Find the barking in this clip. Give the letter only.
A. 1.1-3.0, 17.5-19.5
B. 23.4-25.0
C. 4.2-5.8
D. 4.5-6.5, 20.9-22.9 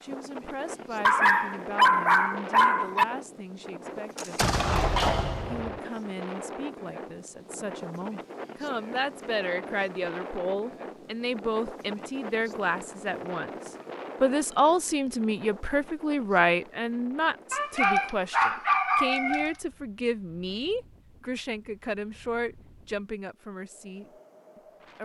A.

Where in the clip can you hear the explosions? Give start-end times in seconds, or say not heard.
4.2-5.8.